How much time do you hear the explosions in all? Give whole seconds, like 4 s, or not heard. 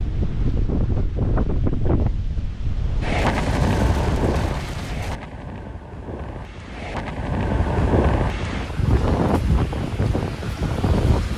2 s.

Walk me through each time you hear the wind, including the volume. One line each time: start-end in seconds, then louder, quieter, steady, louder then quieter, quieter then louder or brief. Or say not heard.
0.0-11.3 quieter then louder.